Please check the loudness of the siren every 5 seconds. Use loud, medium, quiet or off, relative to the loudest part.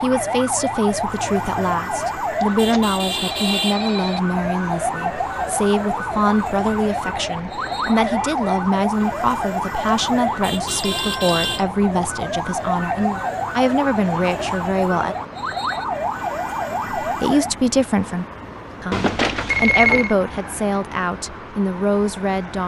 loud, loud, loud, loud, off.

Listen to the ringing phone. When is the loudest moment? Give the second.
20 s.